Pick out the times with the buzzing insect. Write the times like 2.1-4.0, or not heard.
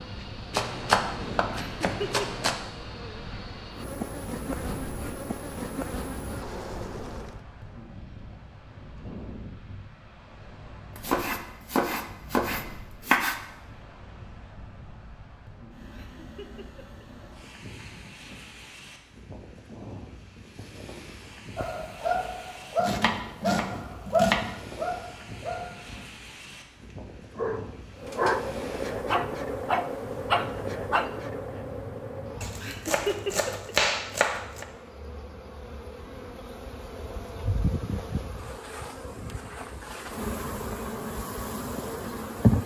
0.0-7.4, 27.9-42.6.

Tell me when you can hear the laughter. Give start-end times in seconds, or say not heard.
1.6-2.2, 15.9-17.1, 32.6-33.7.